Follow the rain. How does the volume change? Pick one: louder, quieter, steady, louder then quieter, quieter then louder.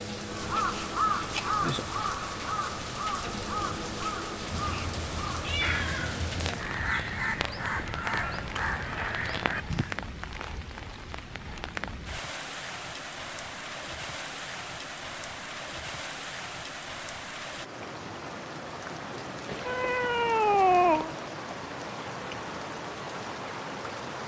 steady.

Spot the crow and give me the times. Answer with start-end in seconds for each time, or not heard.
0.1-10.0.